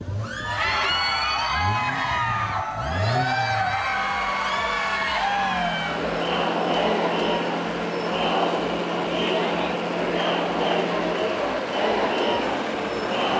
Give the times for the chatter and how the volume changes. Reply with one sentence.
You can hear the chatter from 0.1 to 13.3 s, at a steady volume.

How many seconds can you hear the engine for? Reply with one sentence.
You can hear the engine for 13 seconds altogether.